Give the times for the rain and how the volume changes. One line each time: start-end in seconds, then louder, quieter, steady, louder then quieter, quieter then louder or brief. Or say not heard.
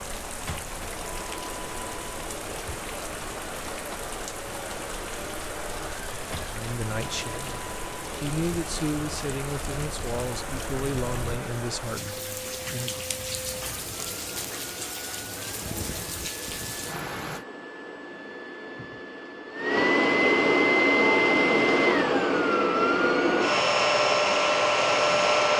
0.0-17.4 steady.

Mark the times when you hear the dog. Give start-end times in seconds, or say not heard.
not heard.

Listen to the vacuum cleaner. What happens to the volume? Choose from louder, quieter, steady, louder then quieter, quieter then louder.
louder.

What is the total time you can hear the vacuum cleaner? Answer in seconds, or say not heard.
25 s.